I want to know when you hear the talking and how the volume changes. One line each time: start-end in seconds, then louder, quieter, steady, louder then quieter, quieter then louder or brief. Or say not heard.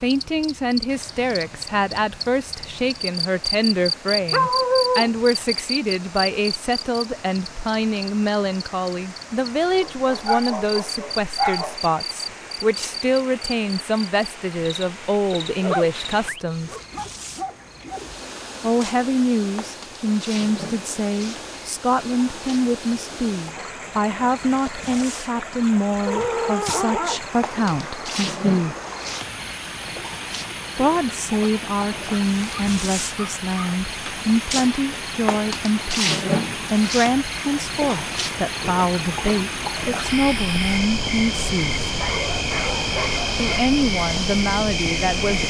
0.0-16.8 steady
18.6-28.8 steady
30.8-41.9 steady
43.4-45.4 brief.